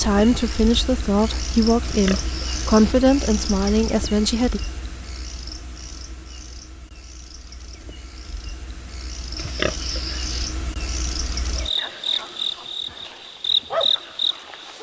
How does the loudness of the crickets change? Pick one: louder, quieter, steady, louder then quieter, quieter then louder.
quieter then louder.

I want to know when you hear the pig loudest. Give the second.
10 s.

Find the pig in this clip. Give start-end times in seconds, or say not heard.
1.9-3.0, 9.3-10.5.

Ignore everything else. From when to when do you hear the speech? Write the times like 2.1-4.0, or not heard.
0.0-4.6.